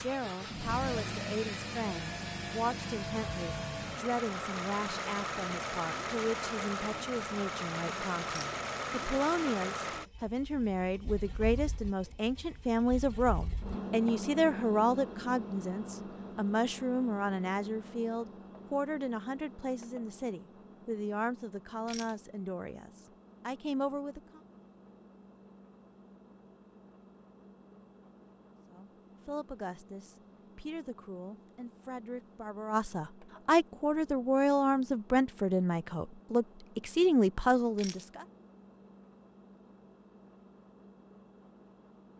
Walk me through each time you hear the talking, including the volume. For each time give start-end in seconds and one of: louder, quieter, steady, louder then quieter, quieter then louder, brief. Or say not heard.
0.0-24.4 louder then quieter
28.6-38.2 louder.